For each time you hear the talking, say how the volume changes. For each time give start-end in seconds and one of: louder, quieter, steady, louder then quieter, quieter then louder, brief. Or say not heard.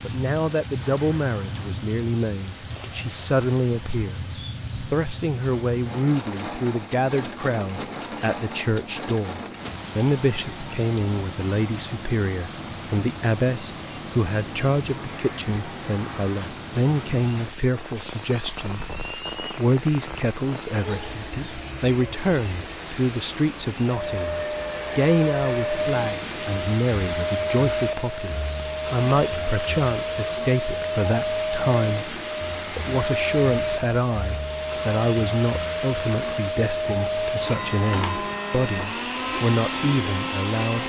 0.1-40.8 steady.